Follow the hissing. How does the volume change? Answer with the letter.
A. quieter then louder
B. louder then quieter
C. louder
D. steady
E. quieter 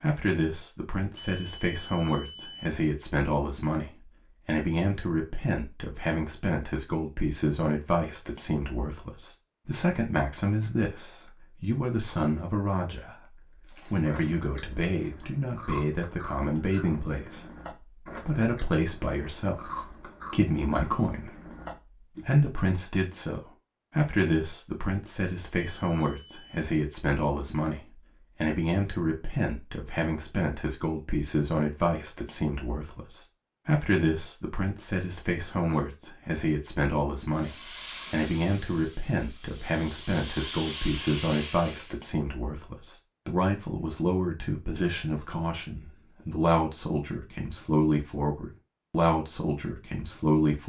A.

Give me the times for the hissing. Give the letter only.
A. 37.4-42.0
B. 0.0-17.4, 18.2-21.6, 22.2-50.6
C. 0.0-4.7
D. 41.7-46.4
A.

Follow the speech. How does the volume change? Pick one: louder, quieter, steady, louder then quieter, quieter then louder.
steady.